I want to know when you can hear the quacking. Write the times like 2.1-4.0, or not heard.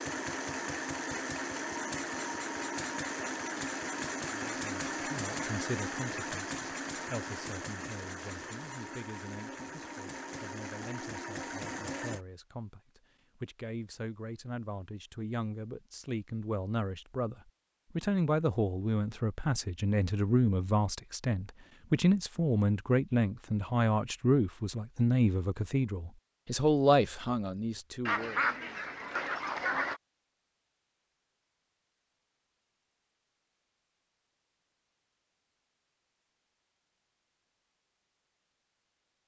28.1-30.0.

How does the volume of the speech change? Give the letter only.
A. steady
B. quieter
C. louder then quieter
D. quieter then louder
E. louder
E.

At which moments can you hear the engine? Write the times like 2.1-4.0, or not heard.
0.0-12.2.